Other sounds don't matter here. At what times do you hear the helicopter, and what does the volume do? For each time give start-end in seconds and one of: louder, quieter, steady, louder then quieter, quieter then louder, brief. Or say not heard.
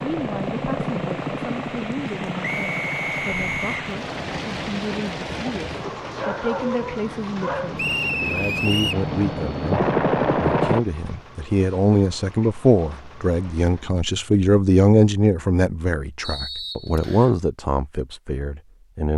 0.0-10.8 quieter then louder.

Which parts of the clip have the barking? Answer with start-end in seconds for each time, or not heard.
6.2-7.8.